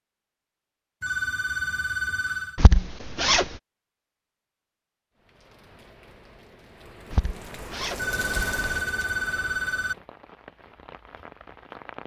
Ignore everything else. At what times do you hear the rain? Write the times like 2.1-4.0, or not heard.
5.2-12.0.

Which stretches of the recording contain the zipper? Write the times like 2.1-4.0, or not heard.
2.5-3.5, 7.1-8.8.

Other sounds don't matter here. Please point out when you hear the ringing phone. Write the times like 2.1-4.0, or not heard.
1.0-2.6, 8.0-9.9.